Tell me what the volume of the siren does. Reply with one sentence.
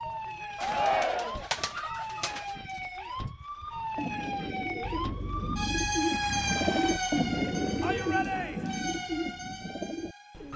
The loudness of the siren goes up, then down.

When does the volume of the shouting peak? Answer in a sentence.
The loudest moment of the shouting is at 1 second.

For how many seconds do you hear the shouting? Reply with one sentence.
You can hear the shouting for 2 seconds altogether.